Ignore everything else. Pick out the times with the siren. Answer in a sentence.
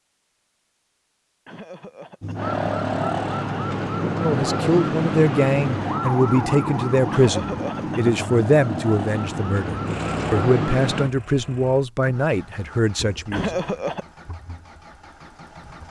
The siren can be heard from 2.4 to 11.1 s.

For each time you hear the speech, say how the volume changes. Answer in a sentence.
You can hear the speech from 4.1 to 13.6 s, at a steady volume.